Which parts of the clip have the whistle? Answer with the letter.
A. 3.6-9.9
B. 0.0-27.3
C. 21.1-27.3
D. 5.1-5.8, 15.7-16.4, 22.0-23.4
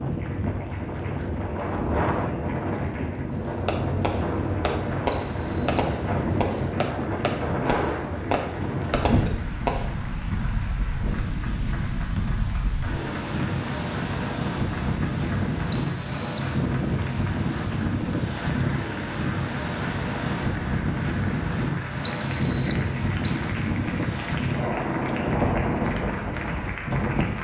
D.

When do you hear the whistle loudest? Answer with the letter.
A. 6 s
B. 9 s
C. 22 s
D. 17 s
C.